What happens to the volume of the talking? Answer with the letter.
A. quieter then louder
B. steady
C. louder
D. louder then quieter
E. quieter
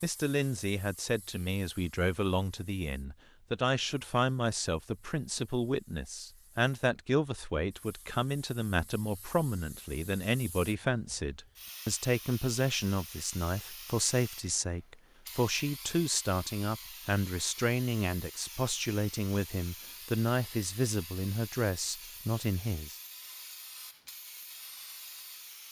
B.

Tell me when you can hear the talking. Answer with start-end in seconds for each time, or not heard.
0.0-22.9.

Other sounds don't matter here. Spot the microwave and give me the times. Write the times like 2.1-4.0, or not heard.
not heard.